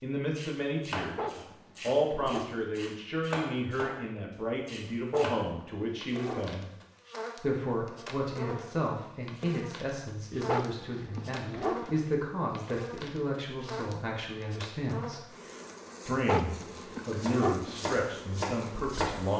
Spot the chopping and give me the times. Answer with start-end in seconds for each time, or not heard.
0.3-4.0, 4.7-5.4, 17.1-19.3.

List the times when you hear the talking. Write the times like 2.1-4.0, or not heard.
0.0-6.7, 7.3-15.2, 16.1-19.3.